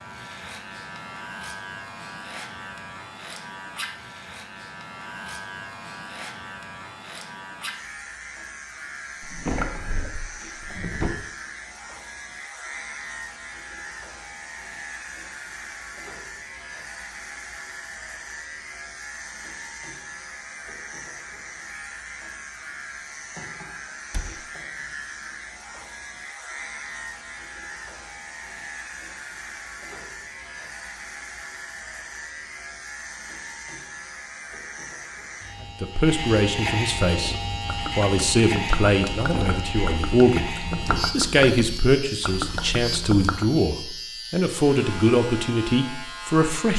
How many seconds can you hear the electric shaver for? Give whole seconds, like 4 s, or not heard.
47 s.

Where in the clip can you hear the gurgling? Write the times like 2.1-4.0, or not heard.
37.1-43.5.